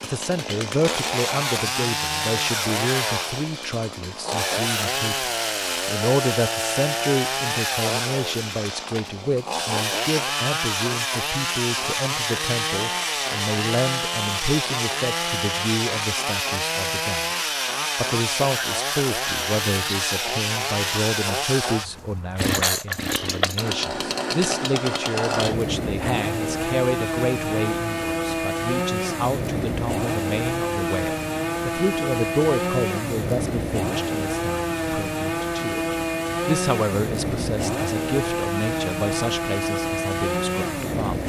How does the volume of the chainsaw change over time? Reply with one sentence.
The loudness of the chainsaw stays about the same.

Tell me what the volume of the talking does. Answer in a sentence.
The loudness of the talking stays about the same.